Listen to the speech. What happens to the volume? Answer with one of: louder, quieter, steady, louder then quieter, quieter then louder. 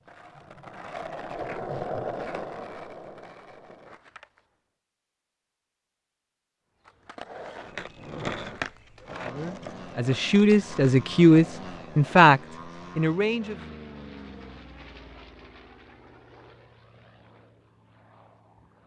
louder then quieter.